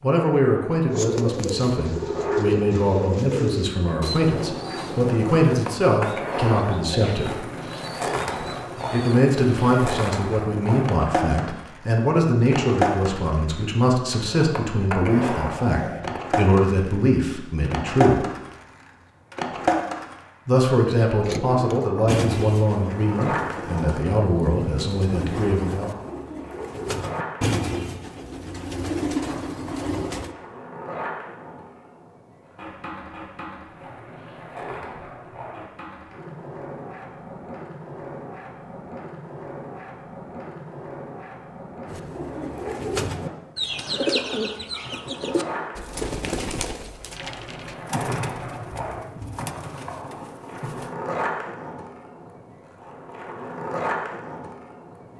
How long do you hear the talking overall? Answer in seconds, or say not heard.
22 s.